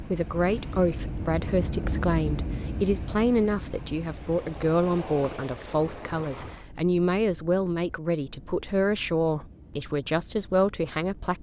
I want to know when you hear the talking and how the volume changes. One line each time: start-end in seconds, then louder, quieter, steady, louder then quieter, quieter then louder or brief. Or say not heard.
0.0-11.3 steady.